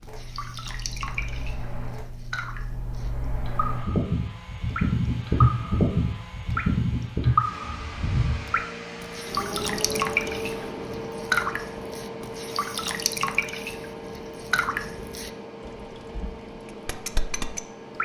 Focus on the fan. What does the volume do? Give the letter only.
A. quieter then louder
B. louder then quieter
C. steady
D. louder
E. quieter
B.